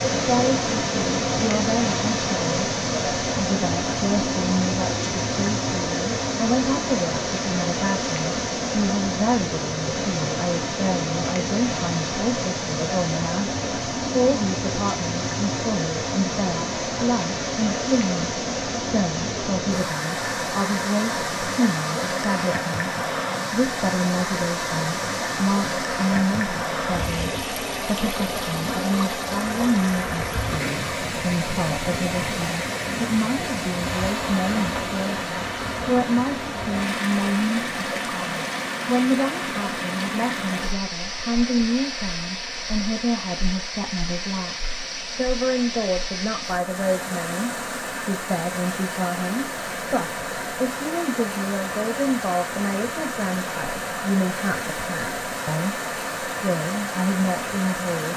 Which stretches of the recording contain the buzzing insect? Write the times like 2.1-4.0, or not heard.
not heard.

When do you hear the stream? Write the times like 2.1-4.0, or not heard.
0.0-58.1.